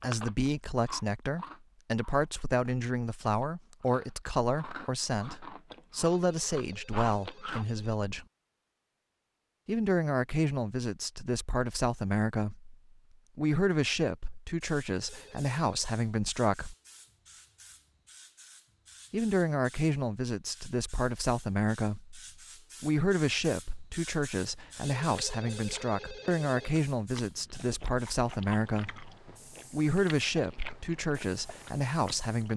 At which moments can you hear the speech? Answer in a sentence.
You can hear the speech from 0.0 to 8.2 s, from 9.7 to 12.8 s, from 13.3 to 16.8 s, from 19.1 to 22.2 s, from 22.8 to 29.1 s and from 29.7 to 32.5 s.